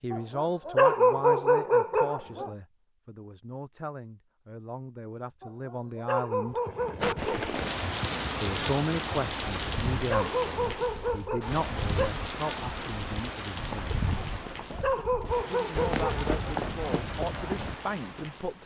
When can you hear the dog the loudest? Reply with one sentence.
The volume of the dog peaks at 1 second.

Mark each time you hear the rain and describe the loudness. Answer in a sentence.
The rain can be heard from 7.0 to 18.6 s, getting quieter.